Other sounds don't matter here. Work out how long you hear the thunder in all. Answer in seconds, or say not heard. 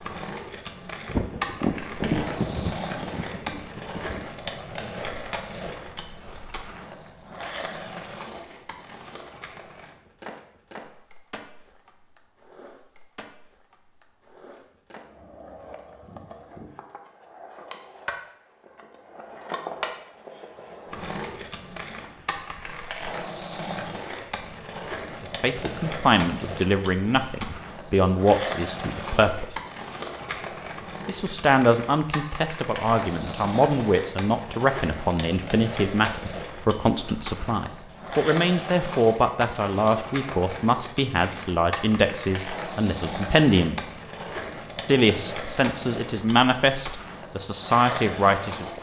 3 s.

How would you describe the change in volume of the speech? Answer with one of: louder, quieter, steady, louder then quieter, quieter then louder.
steady.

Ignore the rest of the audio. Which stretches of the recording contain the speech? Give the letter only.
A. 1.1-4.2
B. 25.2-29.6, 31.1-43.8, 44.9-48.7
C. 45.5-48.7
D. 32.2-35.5
B.